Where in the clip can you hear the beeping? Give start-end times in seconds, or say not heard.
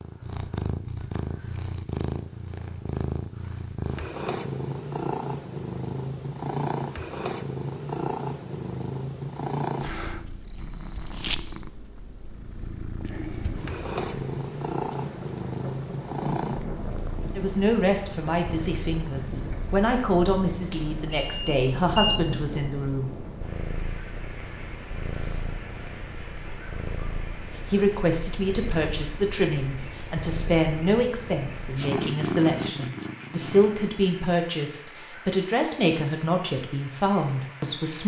21.1-22.2.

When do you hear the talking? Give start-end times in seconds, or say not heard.
17.4-23.1, 27.7-38.0.